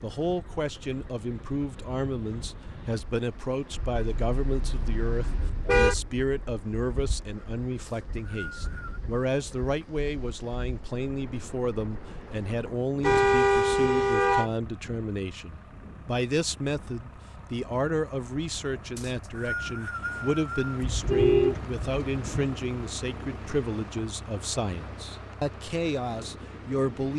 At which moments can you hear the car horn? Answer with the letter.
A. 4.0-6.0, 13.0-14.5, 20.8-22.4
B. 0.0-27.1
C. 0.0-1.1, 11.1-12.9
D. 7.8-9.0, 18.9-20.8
A.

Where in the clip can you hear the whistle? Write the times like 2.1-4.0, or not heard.
7.8-9.0, 18.9-20.8.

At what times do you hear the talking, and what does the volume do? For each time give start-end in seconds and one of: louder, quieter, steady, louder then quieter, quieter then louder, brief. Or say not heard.
0.0-27.1 steady.